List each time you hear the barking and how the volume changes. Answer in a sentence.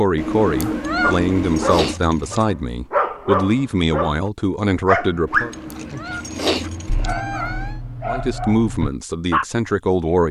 The barking can be heard from 1.0 to 9.4 s, getting louder then quieter.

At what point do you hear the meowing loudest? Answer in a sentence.
The loudest moment of the meowing is at 1 second.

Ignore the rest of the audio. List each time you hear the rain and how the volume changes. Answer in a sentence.
The rain can't be heard in this clip.